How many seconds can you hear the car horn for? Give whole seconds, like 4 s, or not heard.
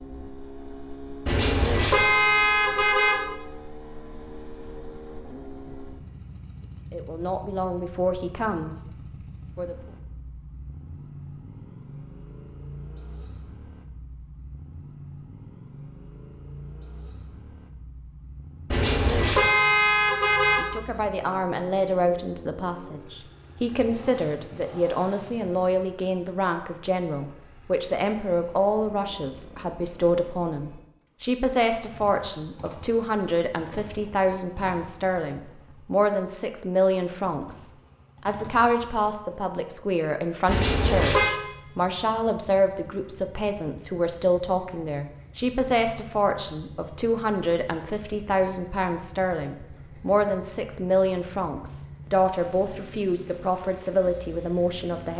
5 s.